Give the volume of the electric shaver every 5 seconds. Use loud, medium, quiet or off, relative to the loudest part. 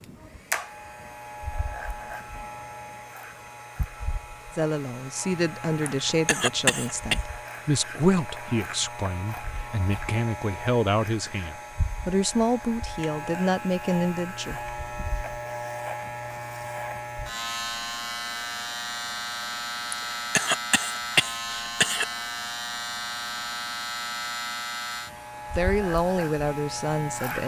medium, medium, medium, loud, loud, loud.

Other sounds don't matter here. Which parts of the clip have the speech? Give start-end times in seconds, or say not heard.
4.5-15.1, 25.5-27.4.